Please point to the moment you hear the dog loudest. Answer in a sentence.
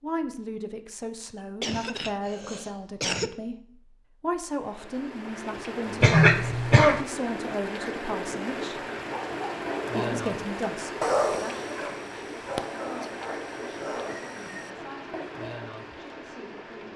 The volume of the dog peaks at 11 seconds.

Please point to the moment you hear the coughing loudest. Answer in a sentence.
The volume of the coughing peaks at 6 seconds.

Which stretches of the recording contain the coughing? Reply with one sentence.
The coughing can be heard from 1.6 to 3.3 s, from 6.0 to 7.0 s and from 12.6 to 13.1 s.